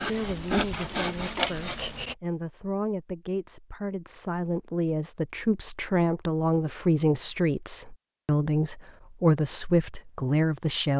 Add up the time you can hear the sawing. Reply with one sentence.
You can hear the sawing for 2 seconds altogether.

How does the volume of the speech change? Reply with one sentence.
The loudness of the speech goes up.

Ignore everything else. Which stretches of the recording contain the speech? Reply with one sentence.
The speech can be heard from 0.1 to 10.9 s.